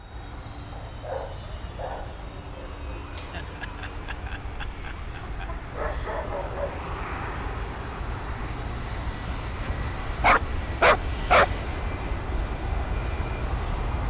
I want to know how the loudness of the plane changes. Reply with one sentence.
The volume of the plane goes up.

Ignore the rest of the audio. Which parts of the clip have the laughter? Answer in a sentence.
The laughter can be heard from 3.1 to 5.7 s.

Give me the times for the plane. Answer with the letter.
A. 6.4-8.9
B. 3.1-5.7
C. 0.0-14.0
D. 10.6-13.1
C.